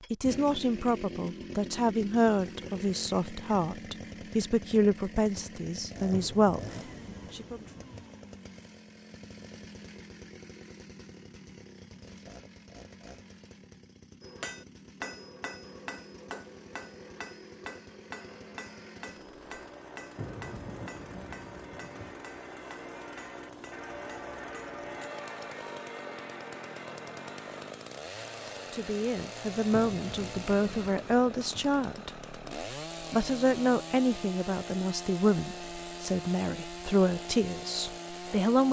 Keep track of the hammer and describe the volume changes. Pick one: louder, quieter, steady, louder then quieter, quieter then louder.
quieter.